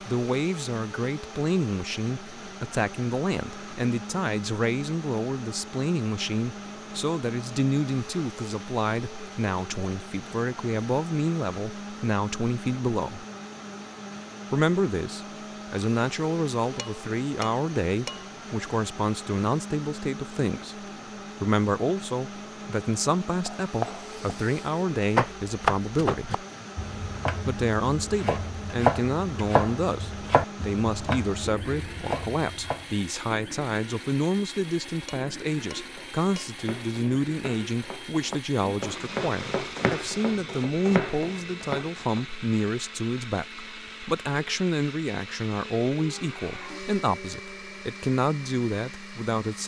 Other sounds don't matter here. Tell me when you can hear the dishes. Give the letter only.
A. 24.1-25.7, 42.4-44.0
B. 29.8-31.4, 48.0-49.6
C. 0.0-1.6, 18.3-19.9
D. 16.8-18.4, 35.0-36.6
D.